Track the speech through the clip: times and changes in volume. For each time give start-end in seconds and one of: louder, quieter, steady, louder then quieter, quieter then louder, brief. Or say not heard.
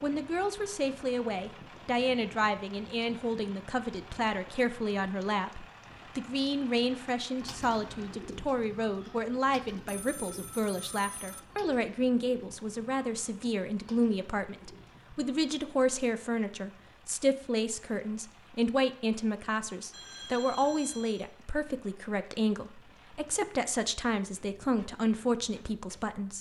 0.0-26.3 steady.